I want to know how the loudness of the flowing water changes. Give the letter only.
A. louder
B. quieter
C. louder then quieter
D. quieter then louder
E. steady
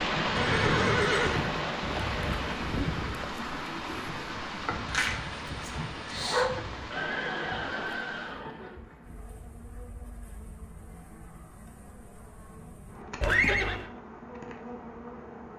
B.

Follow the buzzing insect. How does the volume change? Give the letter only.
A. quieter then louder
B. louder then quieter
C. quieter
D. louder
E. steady
A.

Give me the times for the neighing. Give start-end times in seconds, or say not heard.
0.3-1.4, 6.9-8.8, 13.2-13.8.